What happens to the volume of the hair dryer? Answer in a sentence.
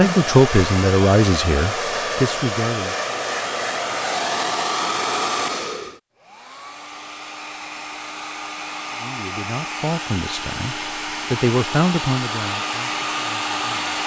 The loudness of the hair dryer goes down, then up.